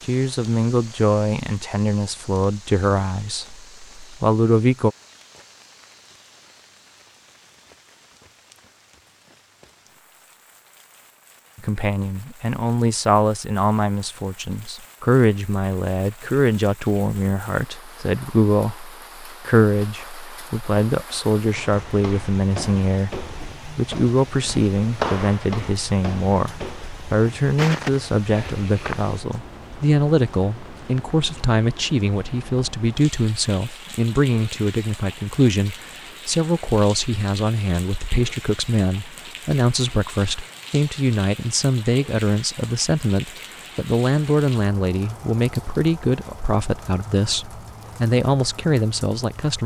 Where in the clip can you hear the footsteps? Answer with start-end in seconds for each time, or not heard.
21.5-29.1.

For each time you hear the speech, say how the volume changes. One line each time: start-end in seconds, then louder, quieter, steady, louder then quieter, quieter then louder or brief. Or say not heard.
0.0-5.0 quieter then louder
11.6-49.6 steady.